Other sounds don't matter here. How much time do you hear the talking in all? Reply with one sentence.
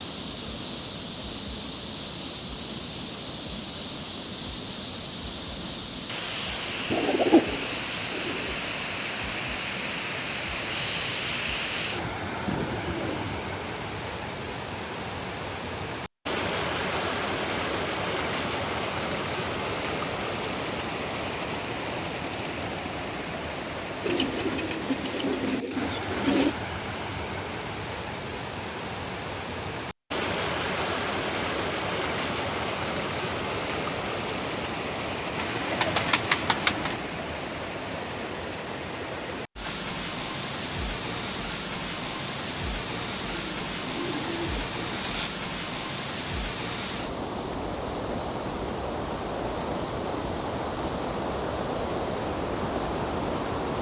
The talking can't be heard in this clip.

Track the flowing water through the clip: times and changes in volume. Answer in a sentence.
The flowing water can be heard from 0.0 to 53.7 s, at a steady volume.